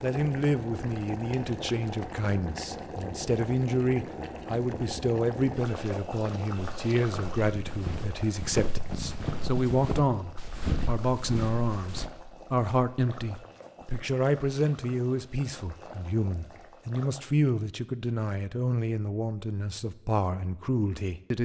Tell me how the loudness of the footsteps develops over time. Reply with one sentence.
The loudness of the footsteps goes up, then down.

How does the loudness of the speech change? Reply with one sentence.
The loudness of the speech stays about the same.